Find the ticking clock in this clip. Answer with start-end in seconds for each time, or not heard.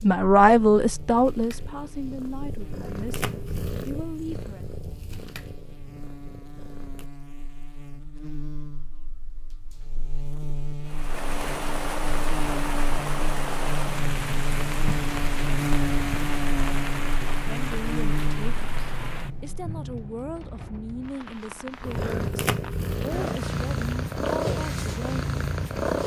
not heard.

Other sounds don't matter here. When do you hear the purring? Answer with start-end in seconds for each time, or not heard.
0.0-7.1, 21.8-26.0.